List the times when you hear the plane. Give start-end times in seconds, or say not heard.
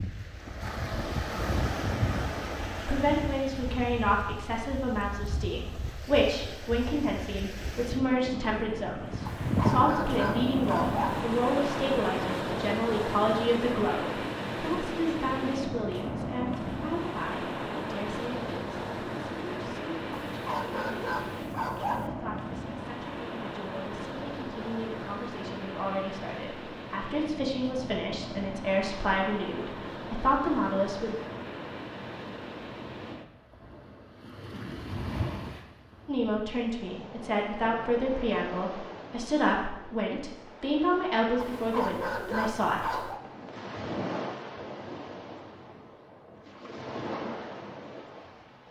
not heard.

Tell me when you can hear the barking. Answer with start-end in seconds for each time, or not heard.
9.4-11.2, 20.2-22.1, 41.4-43.2.